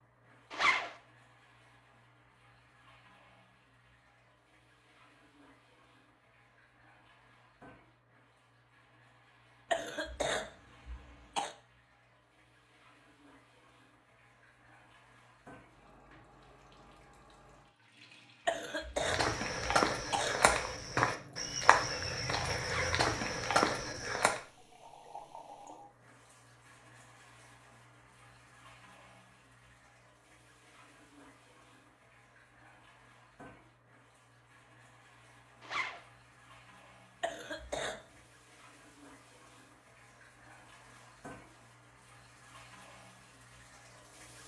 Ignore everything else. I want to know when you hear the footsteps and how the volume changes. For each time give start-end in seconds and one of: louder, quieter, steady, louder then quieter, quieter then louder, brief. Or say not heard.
19.0-24.4 steady.